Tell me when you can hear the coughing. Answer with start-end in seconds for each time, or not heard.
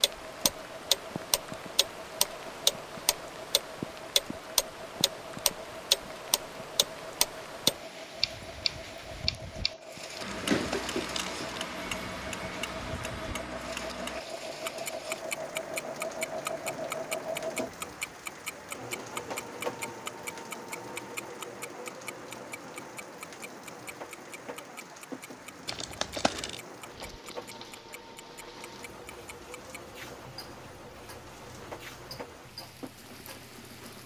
not heard.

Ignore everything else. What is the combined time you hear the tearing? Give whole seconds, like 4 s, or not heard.
2 s.